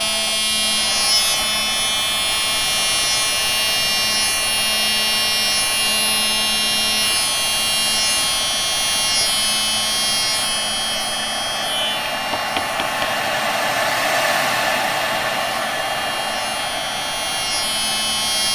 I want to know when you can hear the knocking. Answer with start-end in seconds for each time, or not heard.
12.3-13.2.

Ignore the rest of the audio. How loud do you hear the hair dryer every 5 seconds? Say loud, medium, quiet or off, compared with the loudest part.
medium, medium, loud, loud.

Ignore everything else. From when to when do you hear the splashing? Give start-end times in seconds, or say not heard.
not heard.